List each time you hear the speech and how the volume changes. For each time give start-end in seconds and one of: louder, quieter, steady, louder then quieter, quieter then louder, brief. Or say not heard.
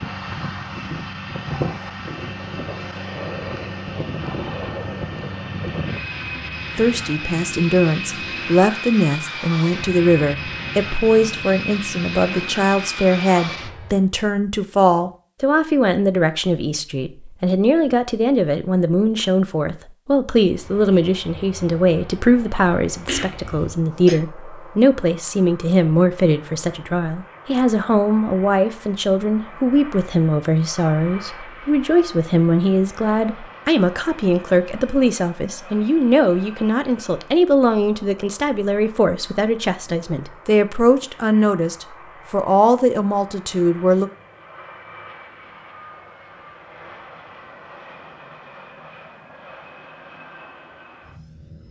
6.8-44.1 steady.